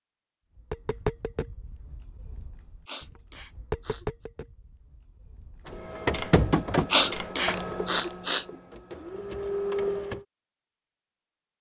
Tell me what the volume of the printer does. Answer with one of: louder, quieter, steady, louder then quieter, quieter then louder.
quieter then louder.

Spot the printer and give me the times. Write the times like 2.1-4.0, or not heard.
5.7-10.2.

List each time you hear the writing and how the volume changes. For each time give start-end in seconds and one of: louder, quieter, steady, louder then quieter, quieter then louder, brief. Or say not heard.
not heard.